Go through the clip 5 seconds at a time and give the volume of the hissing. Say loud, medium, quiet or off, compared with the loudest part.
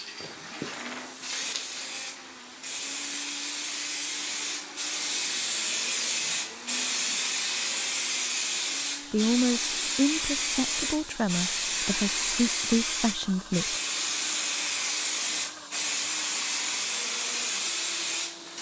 medium, loud, loud, loud.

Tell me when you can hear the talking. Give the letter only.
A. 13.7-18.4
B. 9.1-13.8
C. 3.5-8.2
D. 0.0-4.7
B.